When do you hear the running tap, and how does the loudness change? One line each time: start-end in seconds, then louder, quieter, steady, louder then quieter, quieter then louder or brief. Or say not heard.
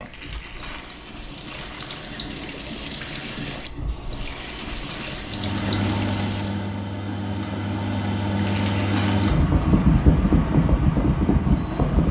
0.0-6.7 louder.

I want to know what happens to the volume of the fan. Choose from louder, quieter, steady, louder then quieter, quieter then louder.
louder.